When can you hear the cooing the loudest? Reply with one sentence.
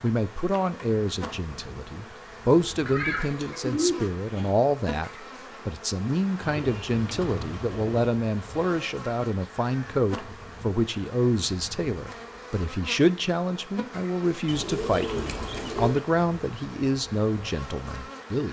The loudest moment of the cooing is at 4 seconds.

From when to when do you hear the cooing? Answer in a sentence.
You can hear the cooing from 2.9 to 4.5 s, from 6.4 to 8.1 s and from 14.4 to 16.0 s.